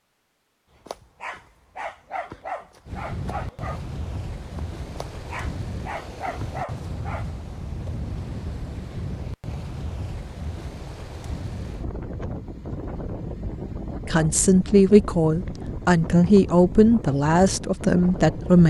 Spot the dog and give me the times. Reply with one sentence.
The dog can be heard from 0.8 to 7.2 s.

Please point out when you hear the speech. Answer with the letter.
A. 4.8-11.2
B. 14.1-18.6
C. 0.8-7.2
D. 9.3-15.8
B.